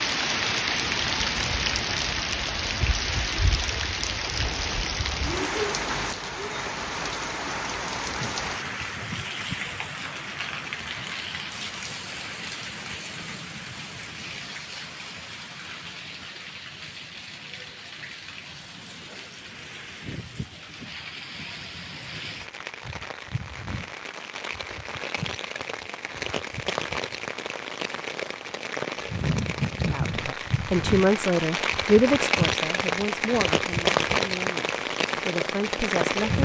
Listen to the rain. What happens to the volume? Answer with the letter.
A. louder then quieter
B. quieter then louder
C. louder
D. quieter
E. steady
B.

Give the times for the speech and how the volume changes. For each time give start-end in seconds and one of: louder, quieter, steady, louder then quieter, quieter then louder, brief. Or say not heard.
29.9-36.4 quieter then louder.